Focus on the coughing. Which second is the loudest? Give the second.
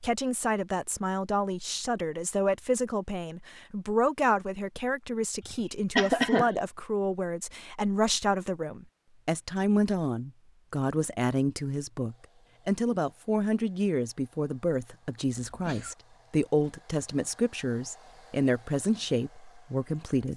6 s.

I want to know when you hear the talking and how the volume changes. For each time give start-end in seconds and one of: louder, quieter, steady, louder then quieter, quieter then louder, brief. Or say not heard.
0.0-20.3 steady.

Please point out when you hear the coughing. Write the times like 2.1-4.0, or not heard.
5.5-6.5, 15.4-15.9.